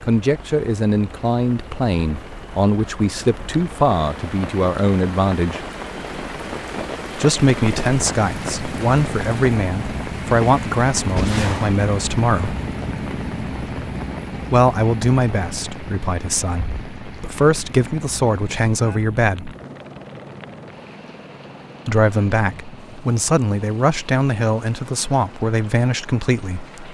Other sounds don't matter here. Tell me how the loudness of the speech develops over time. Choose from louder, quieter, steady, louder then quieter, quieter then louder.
steady.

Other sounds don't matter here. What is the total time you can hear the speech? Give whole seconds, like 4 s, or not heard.
21 s.